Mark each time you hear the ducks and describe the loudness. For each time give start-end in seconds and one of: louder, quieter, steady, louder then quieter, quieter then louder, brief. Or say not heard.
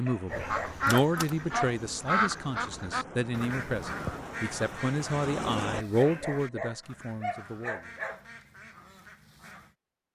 0.3-9.8 quieter.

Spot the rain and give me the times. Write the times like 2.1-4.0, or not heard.
0.0-5.8.